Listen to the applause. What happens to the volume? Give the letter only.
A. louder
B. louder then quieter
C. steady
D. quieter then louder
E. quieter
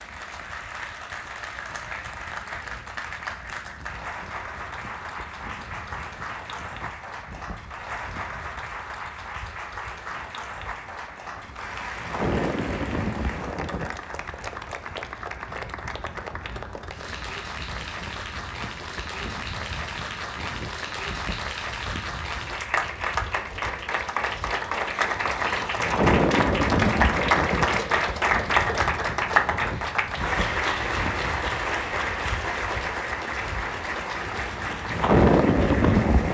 A.